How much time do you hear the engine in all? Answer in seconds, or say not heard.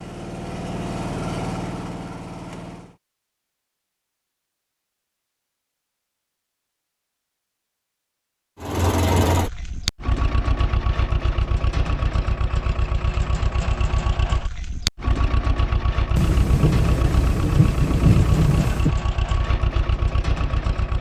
15 s.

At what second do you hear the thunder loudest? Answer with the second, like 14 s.
18 s.